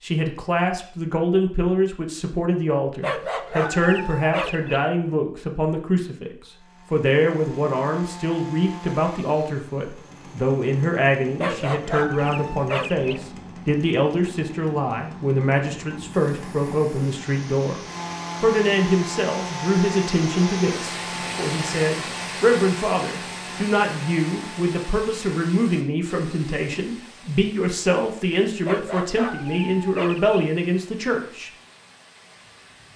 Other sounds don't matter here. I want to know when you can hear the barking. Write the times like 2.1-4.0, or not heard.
3.0-4.8, 11.4-13.2, 28.6-30.4.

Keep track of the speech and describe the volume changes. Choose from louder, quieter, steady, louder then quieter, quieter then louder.
steady.